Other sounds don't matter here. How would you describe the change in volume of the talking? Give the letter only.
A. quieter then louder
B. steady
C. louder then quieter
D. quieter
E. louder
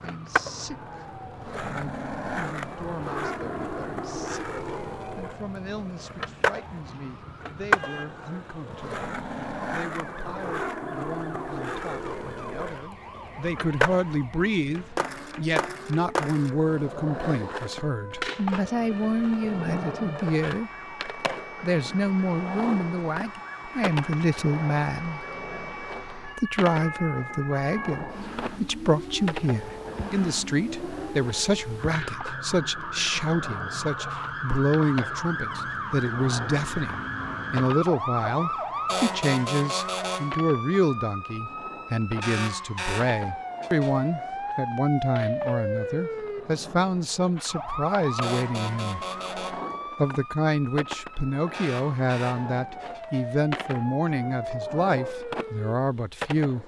E.